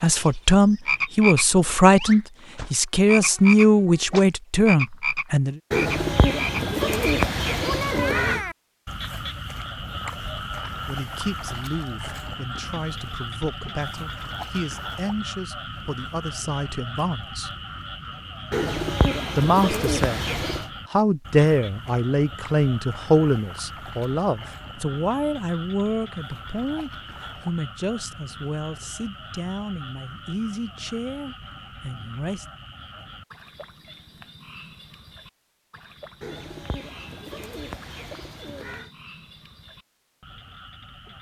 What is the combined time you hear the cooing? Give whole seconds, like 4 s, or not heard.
8 s.